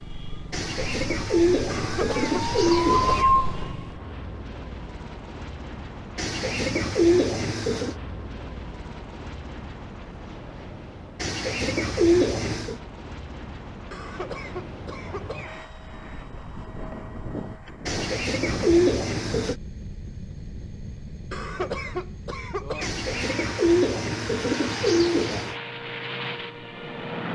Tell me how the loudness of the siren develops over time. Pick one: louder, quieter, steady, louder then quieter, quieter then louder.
louder.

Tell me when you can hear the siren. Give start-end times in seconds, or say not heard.
0.0-4.0.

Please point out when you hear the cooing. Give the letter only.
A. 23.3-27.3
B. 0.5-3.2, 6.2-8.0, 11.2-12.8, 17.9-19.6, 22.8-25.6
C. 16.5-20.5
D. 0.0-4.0
B.